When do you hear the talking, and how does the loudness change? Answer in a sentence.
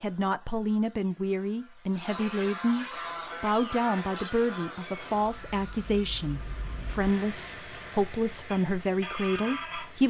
You can hear the talking from 0.0 to 10.0 s, at a steady volume.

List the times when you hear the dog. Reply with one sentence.
The dog can't be heard in this clip.